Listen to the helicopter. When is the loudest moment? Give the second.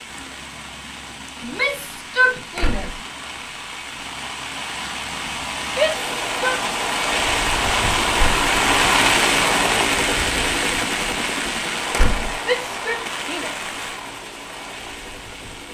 9 s.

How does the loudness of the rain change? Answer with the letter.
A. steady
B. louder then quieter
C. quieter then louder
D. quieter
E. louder
B.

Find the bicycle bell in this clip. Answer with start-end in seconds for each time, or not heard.
not heard.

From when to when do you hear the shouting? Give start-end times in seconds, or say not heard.
1.4-2.9, 5.7-6.5, 12.4-13.7.